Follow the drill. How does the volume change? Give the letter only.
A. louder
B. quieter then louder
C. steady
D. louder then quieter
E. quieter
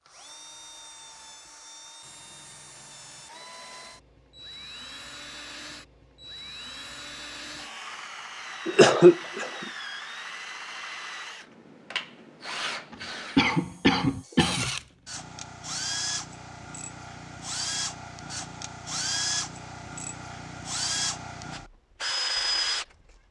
A.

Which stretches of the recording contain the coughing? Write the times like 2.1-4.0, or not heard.
8.7-9.4, 12.9-14.7.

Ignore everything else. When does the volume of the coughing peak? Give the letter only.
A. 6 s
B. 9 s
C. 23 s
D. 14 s
B.